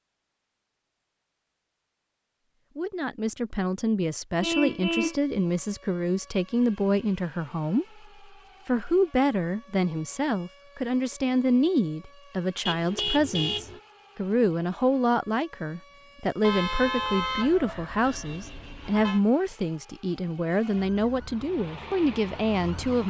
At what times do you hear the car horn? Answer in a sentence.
You can hear the car horn from 4.4 to 5.2 s, from 12.7 to 13.8 s and from 16.4 to 19.2 s.